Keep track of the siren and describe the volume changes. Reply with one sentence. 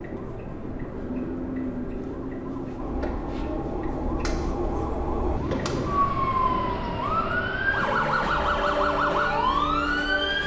The volume of the siren goes up.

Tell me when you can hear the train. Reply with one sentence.
You can hear the train from 0.0 to 10.4 s.